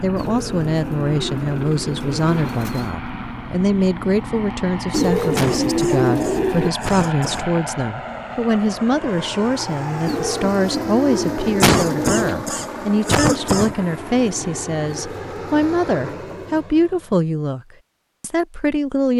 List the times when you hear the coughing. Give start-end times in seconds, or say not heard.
5.3-7.5, 11.6-13.8.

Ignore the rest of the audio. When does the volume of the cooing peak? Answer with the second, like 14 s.
6 s.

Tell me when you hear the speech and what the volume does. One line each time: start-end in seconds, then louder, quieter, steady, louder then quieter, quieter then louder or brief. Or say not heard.
0.0-19.1 steady.